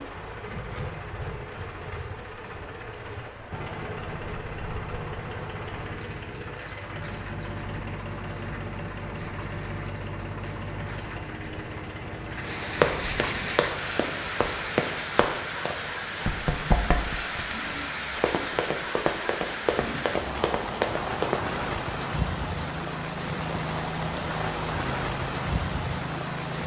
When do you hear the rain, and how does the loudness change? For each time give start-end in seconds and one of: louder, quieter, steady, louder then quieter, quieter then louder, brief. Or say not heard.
0.0-26.6 louder.